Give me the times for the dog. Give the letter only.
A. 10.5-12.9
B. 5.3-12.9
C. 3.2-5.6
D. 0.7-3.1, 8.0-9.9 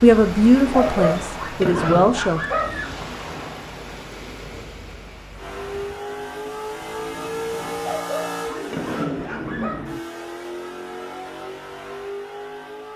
D.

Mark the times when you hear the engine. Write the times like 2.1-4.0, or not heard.
5.3-12.9.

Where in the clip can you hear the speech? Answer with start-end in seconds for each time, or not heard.
0.0-2.4.